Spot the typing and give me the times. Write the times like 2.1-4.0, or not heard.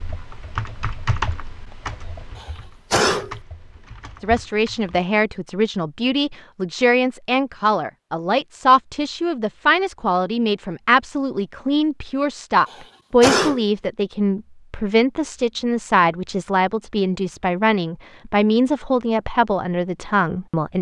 0.0-5.1.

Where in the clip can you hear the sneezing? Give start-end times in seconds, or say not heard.
2.4-3.4, 12.7-13.7.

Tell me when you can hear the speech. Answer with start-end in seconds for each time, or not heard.
4.2-20.7.